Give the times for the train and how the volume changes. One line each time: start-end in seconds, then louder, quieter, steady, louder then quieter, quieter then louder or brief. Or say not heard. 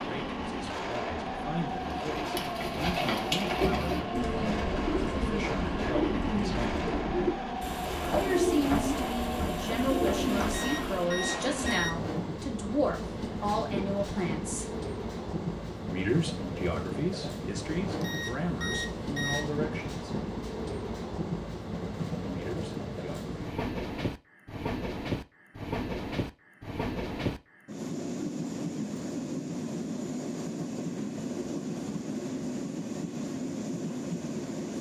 0.0-34.7 steady.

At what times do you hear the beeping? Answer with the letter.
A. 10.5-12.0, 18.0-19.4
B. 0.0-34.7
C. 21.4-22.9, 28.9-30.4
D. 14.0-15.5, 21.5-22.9
A.